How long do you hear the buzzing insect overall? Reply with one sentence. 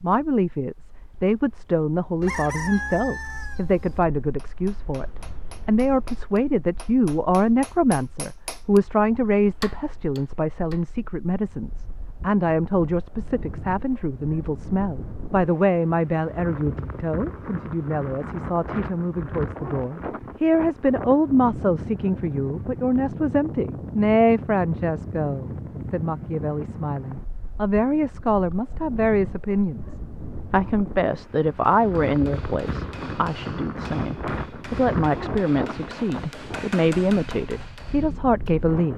You can't hear the buzzing insect here.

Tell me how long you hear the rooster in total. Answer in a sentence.
You can hear the rooster for 2 seconds altogether.